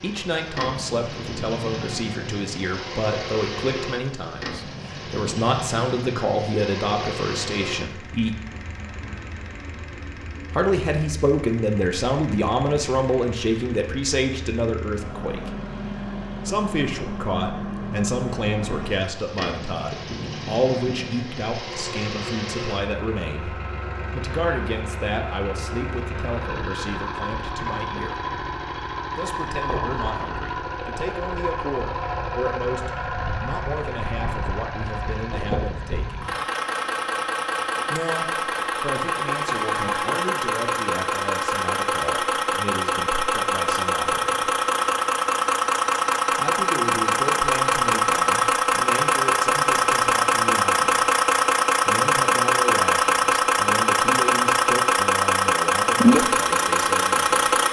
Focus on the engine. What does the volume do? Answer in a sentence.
The loudness of the engine goes up.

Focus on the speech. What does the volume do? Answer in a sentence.
The volume of the speech goes down.